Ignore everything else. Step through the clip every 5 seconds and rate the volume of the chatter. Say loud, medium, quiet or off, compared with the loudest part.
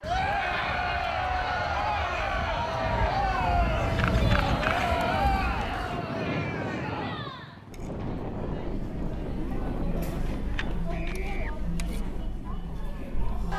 loud, medium, medium.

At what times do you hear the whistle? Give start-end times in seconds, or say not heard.
not heard.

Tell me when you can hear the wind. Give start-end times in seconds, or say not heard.
0.0-10.9.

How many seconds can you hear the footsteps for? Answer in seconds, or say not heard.
not heard.